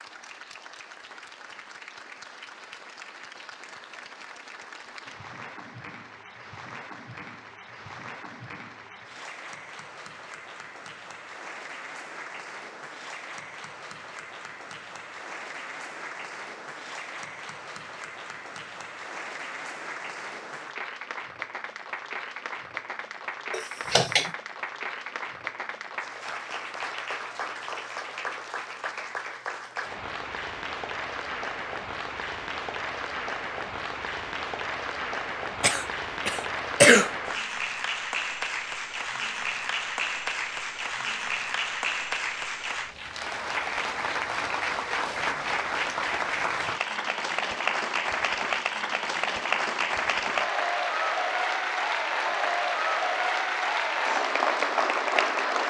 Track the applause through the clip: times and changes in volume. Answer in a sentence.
The applause can be heard from 0.0 to 55.6 s, getting louder.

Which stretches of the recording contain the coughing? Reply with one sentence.
The coughing can be heard from 23.5 to 24.3 s and from 35.6 to 37.1 s.